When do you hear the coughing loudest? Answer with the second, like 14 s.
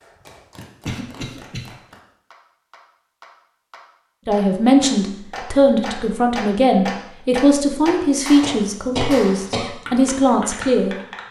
9 s.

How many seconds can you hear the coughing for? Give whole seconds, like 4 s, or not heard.
2 s.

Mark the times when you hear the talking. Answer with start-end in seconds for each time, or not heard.
4.2-10.9.